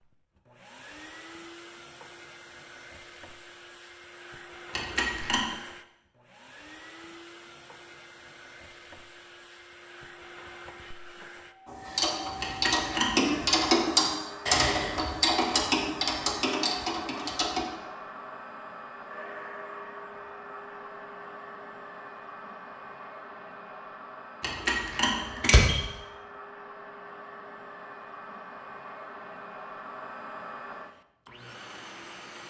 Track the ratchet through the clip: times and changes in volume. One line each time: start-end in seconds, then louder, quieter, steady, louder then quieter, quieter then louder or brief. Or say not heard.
11.7-17.6 louder then quieter.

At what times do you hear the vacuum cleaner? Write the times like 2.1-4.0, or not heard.
0.0-32.4.